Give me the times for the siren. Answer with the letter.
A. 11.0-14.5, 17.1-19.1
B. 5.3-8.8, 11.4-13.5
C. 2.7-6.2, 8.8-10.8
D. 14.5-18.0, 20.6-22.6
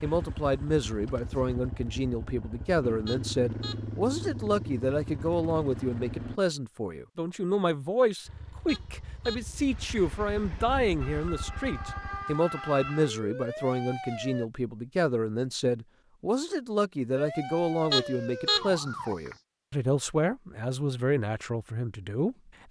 A.